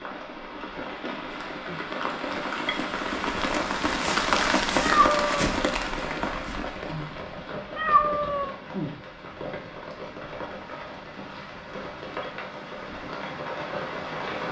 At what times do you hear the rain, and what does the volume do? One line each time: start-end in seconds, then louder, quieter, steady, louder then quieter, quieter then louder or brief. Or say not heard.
0.0-14.4 louder then quieter.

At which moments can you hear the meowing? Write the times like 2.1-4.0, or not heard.
4.8-5.5, 7.8-8.6.